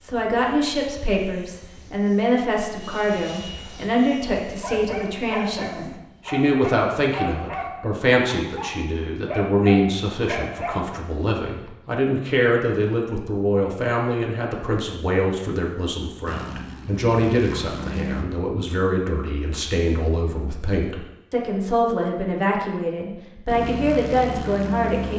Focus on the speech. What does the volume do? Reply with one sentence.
The loudness of the speech stays about the same.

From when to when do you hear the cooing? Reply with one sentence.
The cooing can't be heard in this clip.